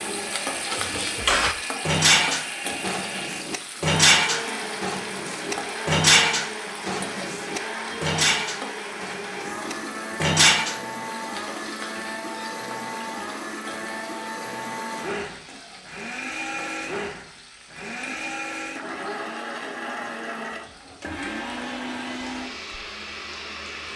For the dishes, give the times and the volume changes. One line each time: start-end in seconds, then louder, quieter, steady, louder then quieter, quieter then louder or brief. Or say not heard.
0.7-10.8 quieter.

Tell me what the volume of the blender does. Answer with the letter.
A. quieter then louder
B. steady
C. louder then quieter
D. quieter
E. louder
B.